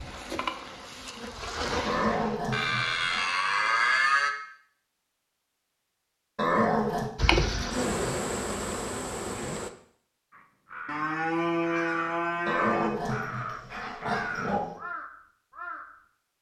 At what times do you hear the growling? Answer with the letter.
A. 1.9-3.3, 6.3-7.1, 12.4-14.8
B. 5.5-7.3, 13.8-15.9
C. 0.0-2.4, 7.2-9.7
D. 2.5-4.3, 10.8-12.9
A.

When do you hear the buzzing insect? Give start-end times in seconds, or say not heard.
0.0-2.4, 7.2-9.7.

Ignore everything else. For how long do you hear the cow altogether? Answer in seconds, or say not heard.
4 s.